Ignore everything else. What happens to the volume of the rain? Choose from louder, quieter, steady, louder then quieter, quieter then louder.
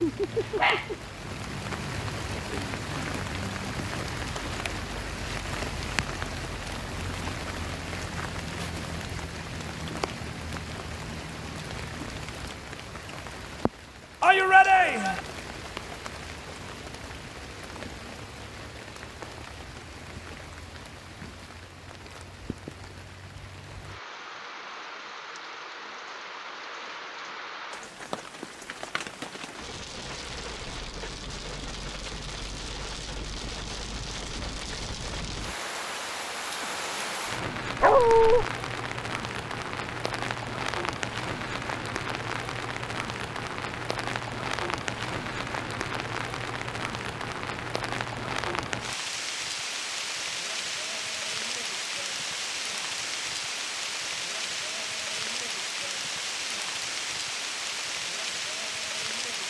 quieter then louder.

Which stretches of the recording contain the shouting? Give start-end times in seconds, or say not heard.
14.2-15.2.